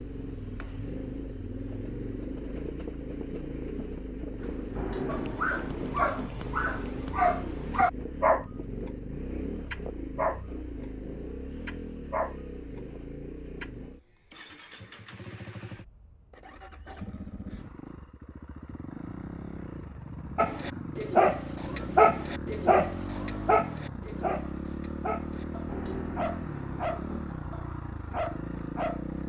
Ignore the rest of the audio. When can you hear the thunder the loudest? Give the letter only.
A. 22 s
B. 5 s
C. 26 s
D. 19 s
B.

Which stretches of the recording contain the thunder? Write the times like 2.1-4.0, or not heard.
4.3-6.3, 25.3-27.2.